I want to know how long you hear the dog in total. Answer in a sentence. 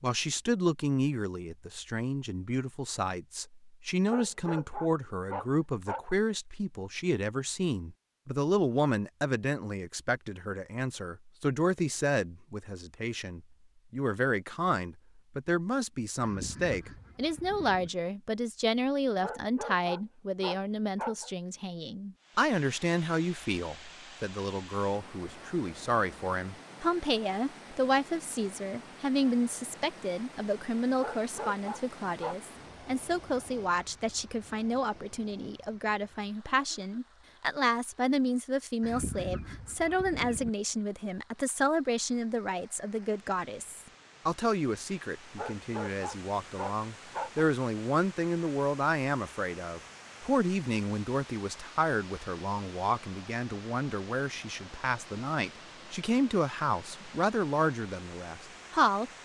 The dog can be heard for 8 seconds in total.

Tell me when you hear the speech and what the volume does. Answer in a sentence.
The speech can be heard from 0.0 to 59.1 s, at a steady volume.